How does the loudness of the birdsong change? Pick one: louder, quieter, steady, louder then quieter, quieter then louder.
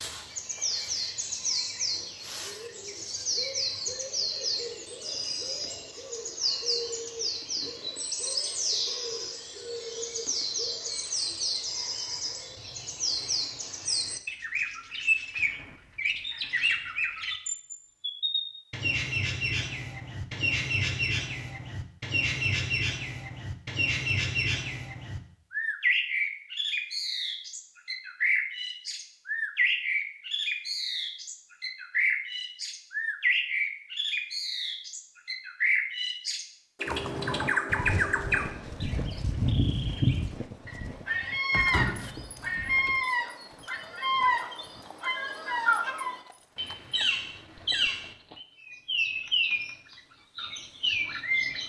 steady.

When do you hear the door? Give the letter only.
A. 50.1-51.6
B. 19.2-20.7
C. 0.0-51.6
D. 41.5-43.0
D.